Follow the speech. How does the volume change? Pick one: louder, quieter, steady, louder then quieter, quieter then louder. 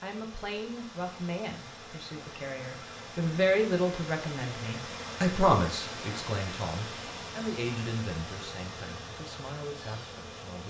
louder then quieter.